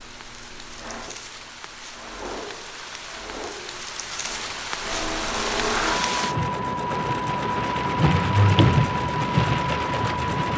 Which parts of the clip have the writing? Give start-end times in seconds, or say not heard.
not heard.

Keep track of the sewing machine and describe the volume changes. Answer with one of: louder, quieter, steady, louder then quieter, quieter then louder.
louder.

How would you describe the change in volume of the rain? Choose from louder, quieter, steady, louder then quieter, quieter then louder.
louder.